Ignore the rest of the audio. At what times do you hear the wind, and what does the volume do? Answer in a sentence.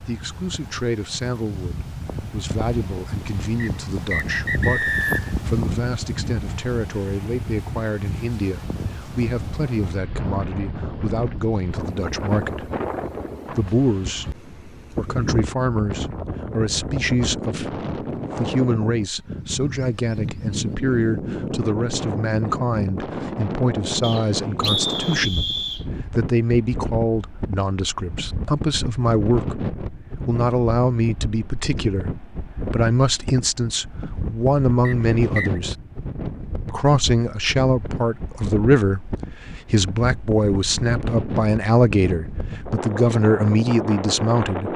You can hear the wind from 0.0 to 44.7 s, at a steady volume.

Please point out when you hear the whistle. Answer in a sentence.
The whistle can be heard from 3.6 to 5.4 s, from 24.0 to 25.9 s and from 34.9 to 35.6 s.